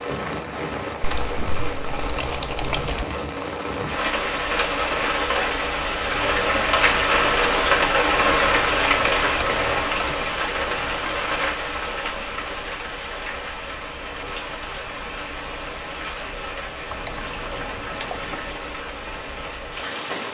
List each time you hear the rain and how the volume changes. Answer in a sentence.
You can hear the rain from 0.0 to 20.2 s, getting louder then quieter.